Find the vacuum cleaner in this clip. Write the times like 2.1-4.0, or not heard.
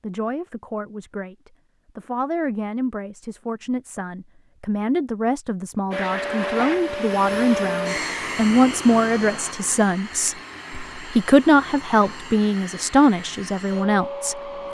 5.9-14.6.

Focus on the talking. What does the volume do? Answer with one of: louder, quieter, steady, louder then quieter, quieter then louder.
louder.